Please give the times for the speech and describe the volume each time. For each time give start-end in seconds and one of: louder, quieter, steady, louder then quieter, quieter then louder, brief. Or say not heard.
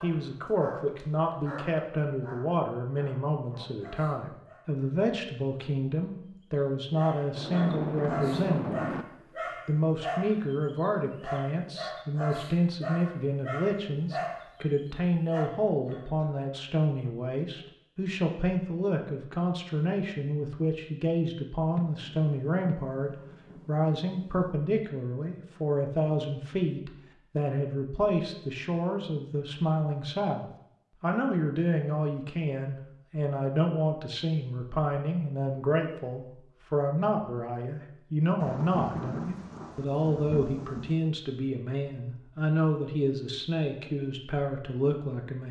0.0-8.8 steady
9.7-45.4 steady.